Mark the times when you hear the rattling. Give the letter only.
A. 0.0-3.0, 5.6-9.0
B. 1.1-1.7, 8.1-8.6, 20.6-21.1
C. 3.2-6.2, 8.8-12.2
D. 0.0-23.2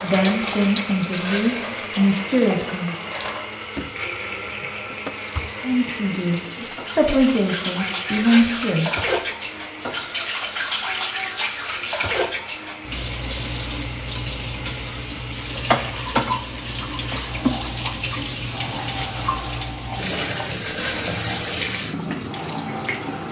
B.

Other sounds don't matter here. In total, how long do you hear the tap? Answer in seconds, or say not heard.
23 s.